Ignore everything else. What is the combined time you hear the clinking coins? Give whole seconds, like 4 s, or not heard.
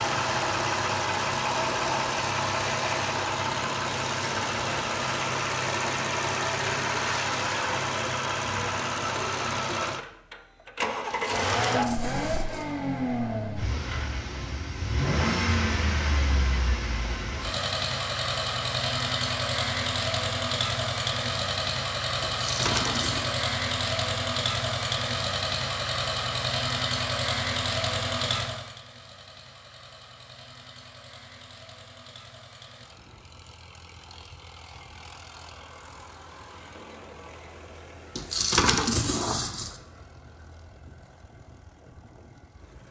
4 s.